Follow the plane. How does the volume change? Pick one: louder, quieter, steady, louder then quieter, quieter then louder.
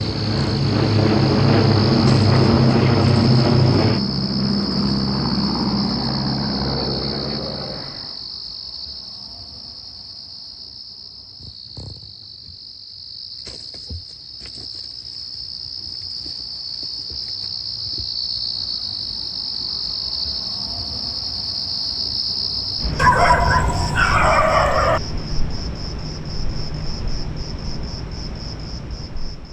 quieter.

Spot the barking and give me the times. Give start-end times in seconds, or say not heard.
22.9-25.0.